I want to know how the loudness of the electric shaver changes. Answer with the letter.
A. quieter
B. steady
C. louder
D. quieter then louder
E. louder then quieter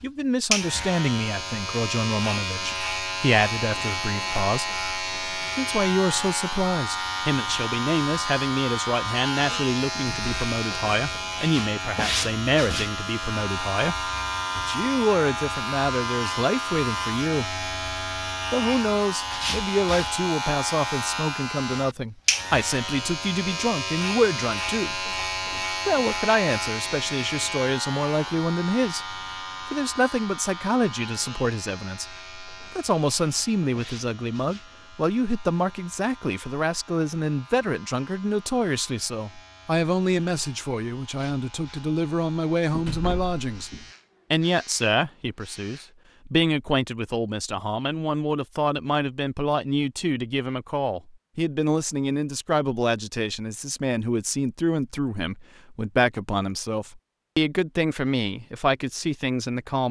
A.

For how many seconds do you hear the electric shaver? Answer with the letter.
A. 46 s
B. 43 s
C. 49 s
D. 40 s
A.